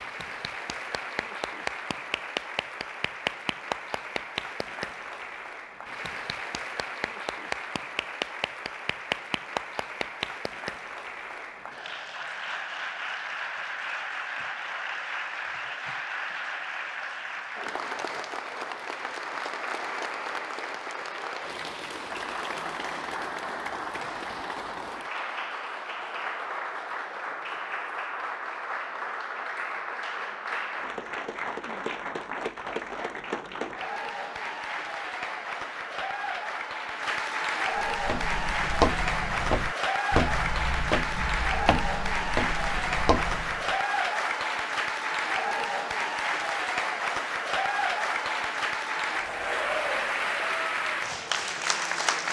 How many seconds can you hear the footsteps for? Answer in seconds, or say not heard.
6 s.